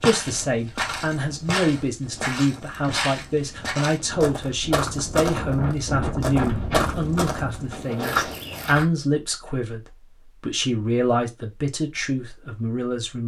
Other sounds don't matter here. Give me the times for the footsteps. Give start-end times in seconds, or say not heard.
0.0-8.8.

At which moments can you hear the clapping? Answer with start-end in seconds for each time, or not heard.
not heard.